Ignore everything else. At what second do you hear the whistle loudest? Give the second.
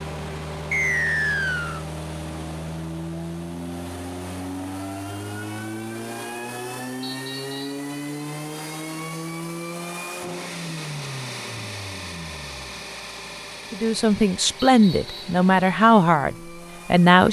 1 s.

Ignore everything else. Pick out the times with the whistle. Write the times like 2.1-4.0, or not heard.
0.7-1.9, 7.0-7.8, 14.6-15.3.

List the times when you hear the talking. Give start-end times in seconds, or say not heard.
13.7-17.2.